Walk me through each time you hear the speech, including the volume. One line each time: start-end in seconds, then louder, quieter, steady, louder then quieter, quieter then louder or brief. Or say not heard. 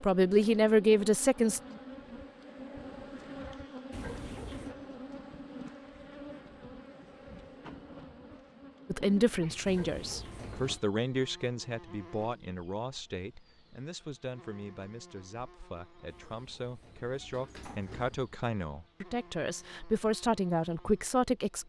0.0-1.6 brief
8.9-21.6 quieter then louder.